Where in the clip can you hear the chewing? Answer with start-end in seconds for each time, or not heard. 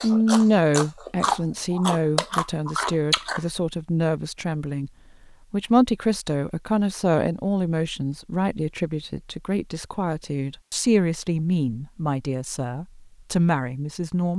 0.0-3.5.